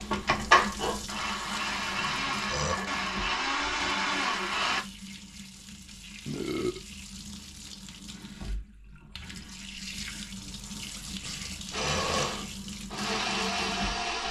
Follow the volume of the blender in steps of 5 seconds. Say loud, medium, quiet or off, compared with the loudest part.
loud, off, loud.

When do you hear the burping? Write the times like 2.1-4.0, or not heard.
1.9-2.8, 6.2-6.8, 10.9-12.5.